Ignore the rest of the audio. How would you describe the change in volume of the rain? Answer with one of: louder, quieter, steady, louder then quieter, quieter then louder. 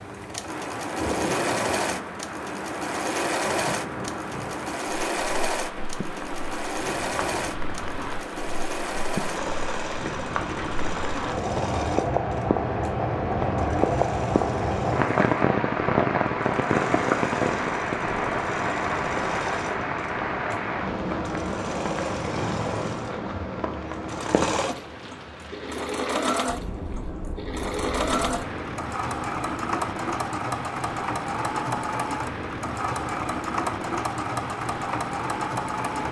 louder then quieter.